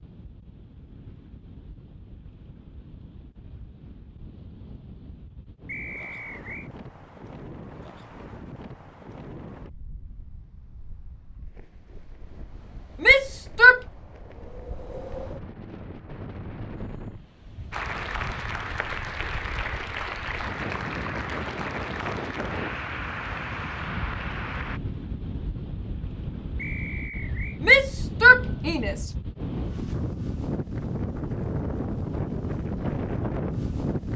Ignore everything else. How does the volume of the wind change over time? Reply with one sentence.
The loudness of the wind goes up.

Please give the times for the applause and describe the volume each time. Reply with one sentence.
You can hear the applause from 17.7 to 24.8 s, at a steady volume.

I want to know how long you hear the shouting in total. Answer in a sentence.
You can hear the shouting for 2 seconds altogether.